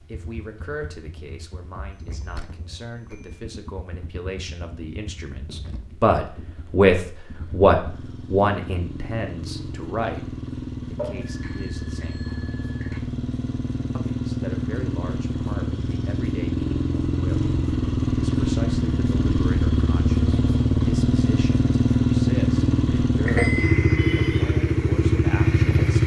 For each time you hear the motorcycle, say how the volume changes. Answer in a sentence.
You can hear the motorcycle from 0.0 to 26.0 s, getting louder.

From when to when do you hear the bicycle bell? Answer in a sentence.
You can hear the bicycle bell from 1.9 to 3.4 s, from 10.9 to 13.0 s and from 23.2 to 24.2 s.